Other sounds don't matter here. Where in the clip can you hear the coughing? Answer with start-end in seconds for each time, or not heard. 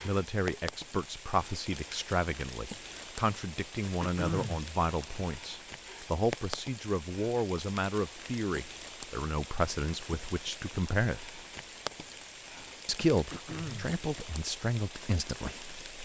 4.0-4.7, 13.3-13.9.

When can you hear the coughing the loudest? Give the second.
4 s.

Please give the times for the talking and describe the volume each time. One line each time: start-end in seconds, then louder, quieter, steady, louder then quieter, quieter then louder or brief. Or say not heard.
0.0-11.3 steady
12.8-15.7 brief.